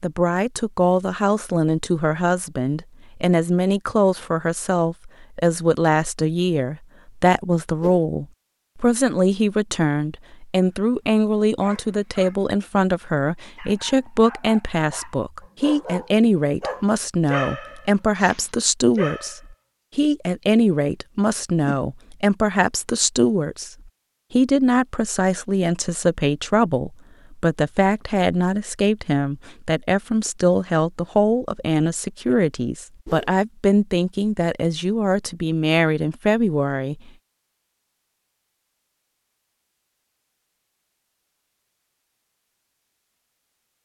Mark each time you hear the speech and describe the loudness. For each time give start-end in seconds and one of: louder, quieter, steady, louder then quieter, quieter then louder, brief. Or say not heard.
0.0-37.1 steady.